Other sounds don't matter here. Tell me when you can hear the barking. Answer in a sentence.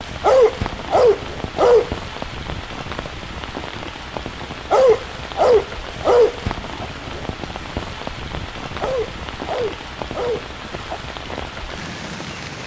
You can hear the barking from 0.2 to 1.9 s, from 4.7 to 6.8 s and from 8.8 to 11.0 s.